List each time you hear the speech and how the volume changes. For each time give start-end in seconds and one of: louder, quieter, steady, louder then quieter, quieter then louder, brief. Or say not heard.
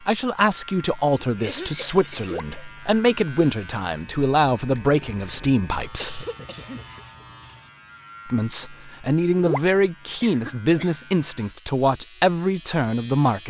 0.1-6.2 steady
8.2-13.4 steady.